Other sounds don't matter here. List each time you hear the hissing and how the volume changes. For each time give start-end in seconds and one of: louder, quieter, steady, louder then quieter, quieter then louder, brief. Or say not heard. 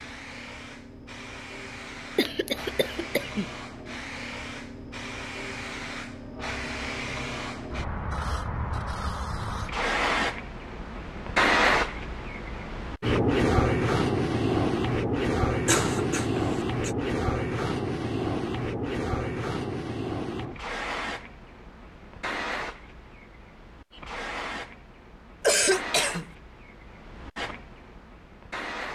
0.0-28.9 louder then quieter.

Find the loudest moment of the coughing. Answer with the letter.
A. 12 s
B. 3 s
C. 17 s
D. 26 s
D.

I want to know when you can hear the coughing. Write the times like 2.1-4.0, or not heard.
2.1-3.5, 15.7-16.9, 25.4-26.3.